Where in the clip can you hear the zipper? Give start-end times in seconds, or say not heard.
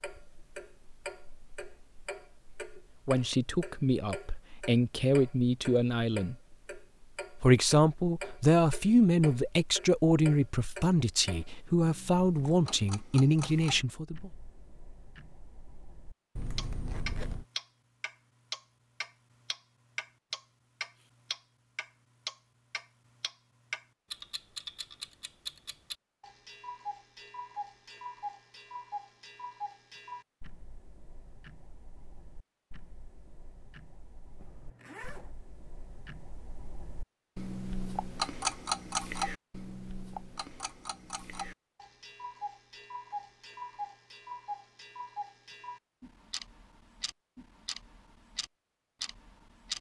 16.4-17.4, 34.4-35.4.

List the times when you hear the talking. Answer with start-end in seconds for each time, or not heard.
3.0-6.3, 7.4-14.3.